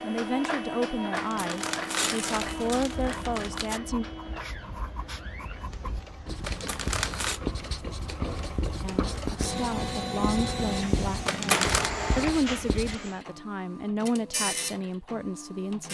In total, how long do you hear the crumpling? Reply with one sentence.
You can hear the crumpling for 4 seconds altogether.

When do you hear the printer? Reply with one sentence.
You can hear the printer from 0.0 to 15.8 s.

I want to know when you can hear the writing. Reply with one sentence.
You can hear the writing from 2.4 to 12.9 s.